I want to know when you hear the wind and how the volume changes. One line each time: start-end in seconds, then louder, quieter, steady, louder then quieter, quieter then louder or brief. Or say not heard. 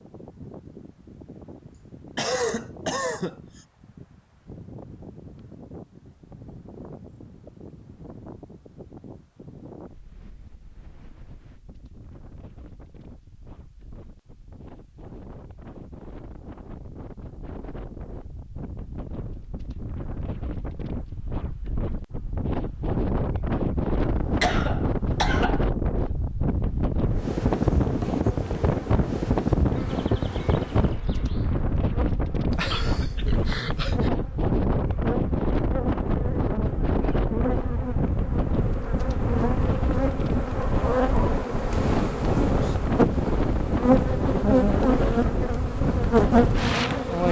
0.0-47.2 louder.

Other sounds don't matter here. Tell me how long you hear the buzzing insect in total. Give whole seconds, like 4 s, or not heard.
20 s.